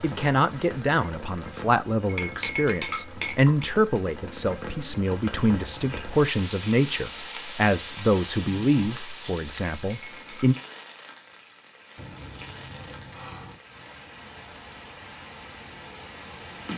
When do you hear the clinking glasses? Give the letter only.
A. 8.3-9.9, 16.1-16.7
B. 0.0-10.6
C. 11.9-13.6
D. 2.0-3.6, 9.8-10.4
D.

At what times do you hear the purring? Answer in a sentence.
The purring can't be heard in this clip.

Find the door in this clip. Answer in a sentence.
You can hear the door from 11.9 to 13.6 s.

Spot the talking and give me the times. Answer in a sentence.
You can hear the talking from 0.0 to 10.6 s.